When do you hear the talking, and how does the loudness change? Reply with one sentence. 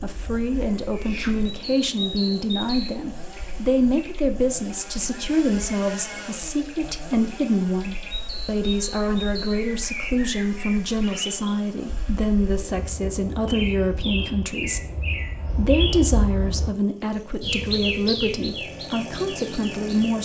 The talking can be heard from 0.0 to 20.2 s, at a steady volume.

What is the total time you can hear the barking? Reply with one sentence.
The barking can't be heard in this clip.